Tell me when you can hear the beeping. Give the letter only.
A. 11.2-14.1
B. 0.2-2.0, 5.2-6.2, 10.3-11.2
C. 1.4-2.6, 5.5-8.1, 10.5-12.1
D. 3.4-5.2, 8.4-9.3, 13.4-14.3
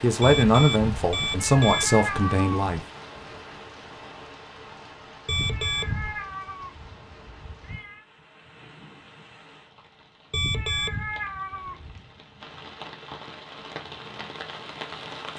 B.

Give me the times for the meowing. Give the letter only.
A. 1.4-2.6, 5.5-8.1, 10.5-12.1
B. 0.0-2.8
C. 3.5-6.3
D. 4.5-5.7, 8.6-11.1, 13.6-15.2
A.